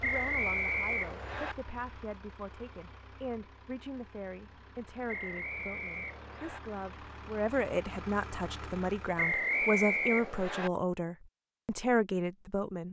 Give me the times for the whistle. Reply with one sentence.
You can hear the whistle from 0.0 to 1.6 s, from 5.0 to 6.6 s and from 9.2 to 10.7 s.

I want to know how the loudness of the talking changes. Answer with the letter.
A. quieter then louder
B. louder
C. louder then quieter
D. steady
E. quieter
B.